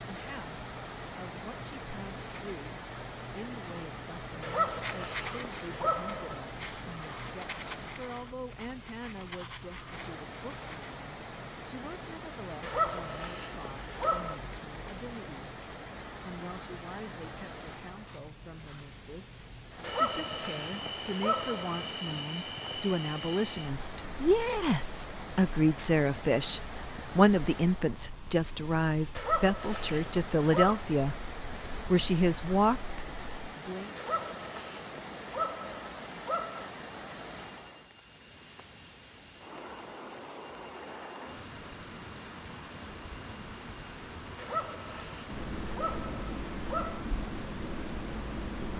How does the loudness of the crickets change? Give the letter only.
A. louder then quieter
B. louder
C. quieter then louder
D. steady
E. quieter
D.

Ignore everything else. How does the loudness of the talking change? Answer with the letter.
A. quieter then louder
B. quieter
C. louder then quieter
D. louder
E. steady
D.